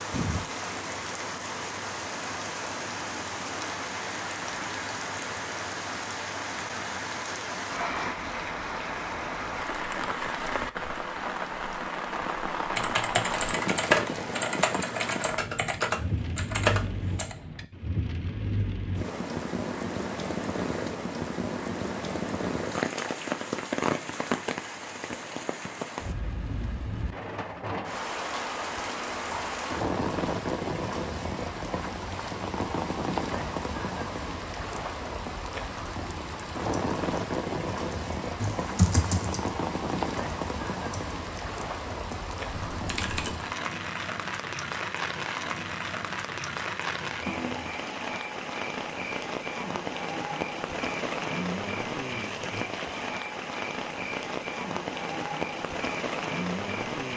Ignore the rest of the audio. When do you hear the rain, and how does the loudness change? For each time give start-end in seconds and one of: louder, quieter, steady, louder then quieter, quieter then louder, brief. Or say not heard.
0.0-57.1 steady.